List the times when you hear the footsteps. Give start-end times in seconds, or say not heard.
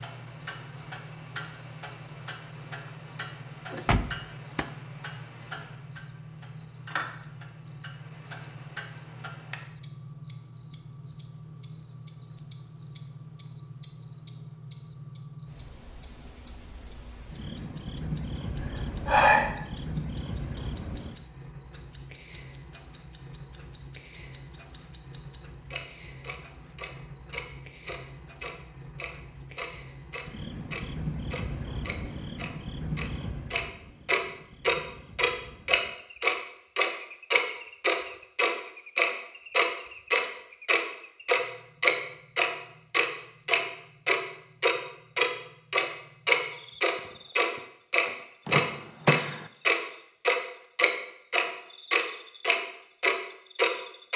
not heard.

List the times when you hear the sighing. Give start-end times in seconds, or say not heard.
18.6-19.6.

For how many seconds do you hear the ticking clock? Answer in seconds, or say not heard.
54 s.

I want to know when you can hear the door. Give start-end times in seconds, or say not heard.
3.7-4.7, 48.5-49.5.